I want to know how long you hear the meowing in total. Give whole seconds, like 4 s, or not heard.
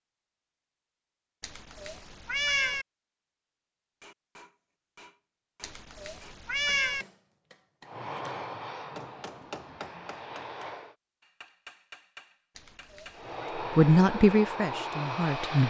4 s.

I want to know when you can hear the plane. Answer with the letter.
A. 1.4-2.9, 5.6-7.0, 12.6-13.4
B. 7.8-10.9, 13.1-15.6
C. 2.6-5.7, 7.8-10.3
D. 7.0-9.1
B.